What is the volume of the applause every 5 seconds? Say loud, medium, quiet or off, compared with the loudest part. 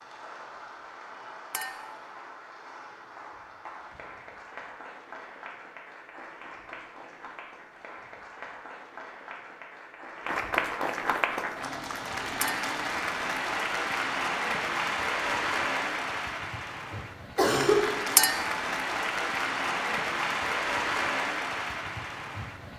quiet, quiet, loud, loud, loud.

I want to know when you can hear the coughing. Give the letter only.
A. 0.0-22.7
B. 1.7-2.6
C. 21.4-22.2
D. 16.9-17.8
D.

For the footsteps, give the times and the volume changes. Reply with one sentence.
The footsteps can't be heard in this clip.